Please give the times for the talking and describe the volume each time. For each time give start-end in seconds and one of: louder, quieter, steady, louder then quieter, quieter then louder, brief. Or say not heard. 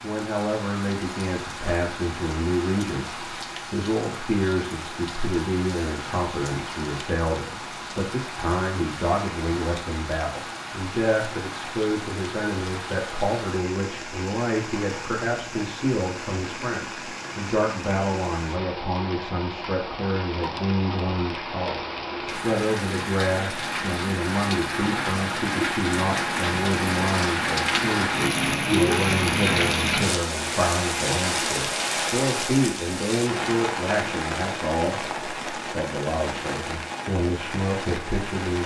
0.0-38.6 steady.